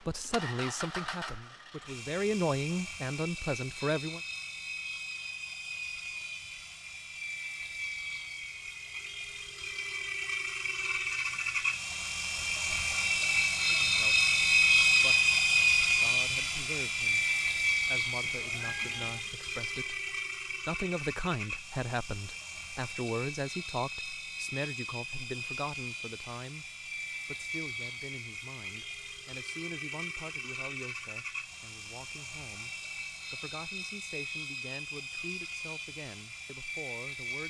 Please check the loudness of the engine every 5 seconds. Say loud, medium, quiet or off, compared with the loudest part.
quiet, quiet, loud, loud, quiet, quiet, quiet, quiet.